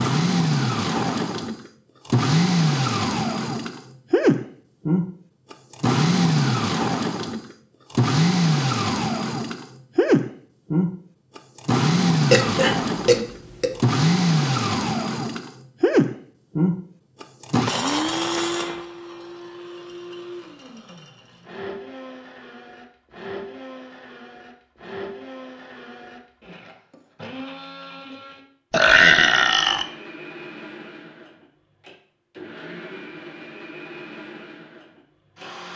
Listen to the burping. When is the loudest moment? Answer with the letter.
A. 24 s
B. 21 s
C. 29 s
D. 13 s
C.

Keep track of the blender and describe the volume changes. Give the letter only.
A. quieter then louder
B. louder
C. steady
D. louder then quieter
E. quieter
E.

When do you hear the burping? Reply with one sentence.
The burping can be heard from 12.3 to 13.8 s and from 28.7 to 29.9 s.